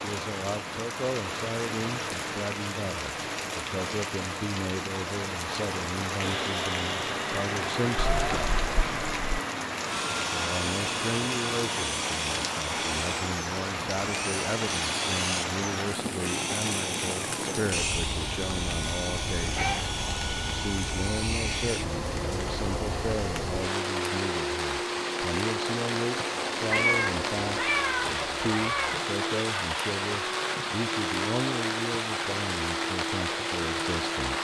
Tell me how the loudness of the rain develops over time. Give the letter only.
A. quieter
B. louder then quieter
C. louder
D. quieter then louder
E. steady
E.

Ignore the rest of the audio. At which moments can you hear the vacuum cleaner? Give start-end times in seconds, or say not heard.
6.2-34.3.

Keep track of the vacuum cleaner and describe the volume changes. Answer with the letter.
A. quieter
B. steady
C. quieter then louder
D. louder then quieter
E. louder
B.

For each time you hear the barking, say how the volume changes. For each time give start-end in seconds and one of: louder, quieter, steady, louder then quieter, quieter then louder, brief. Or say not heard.
not heard.